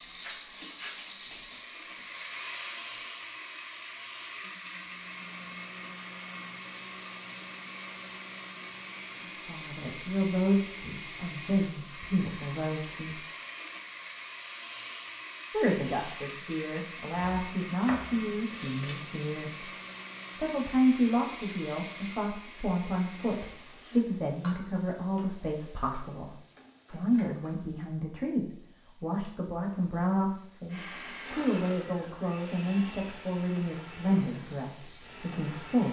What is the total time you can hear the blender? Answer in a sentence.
The blender can be heard for 29 seconds in total.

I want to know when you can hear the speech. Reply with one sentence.
The speech can be heard from 9.3 to 13.2 s, from 15.5 to 19.6 s and from 20.4 to 35.8 s.